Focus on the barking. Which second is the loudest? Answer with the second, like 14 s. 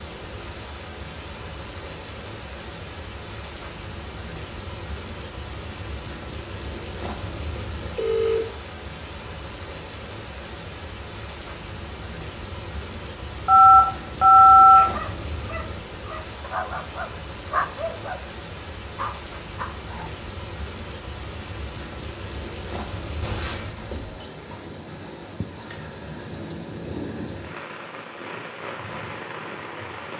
18 s.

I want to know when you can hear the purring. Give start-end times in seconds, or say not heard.
not heard.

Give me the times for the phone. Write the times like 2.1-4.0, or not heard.
7.5-8.4, 13.4-14.8, 23.2-24.2.